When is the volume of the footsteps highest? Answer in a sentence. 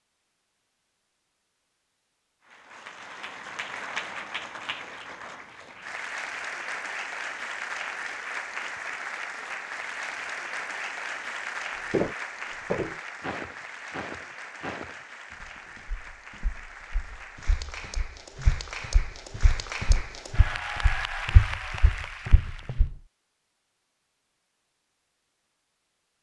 The loudest moment of the footsteps is at 12 seconds.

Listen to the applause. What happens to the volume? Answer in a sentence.
The volume of the applause goes down, then up.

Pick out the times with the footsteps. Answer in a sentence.
The footsteps can be heard from 11.9 to 22.9 s.